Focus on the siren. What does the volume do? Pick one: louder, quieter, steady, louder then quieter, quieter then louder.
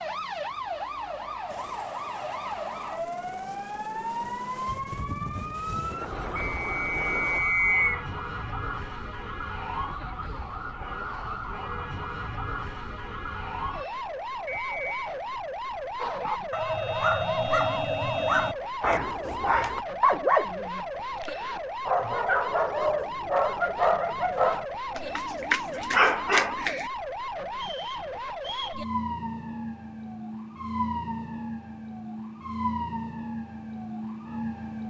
steady.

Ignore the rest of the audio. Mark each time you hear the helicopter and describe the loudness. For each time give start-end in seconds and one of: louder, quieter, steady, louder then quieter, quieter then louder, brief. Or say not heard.
1.4-7.4 louder.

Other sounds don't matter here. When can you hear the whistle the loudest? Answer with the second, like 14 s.
8 s.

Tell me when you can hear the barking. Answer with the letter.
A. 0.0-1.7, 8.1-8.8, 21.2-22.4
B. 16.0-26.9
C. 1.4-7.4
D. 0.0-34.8
B.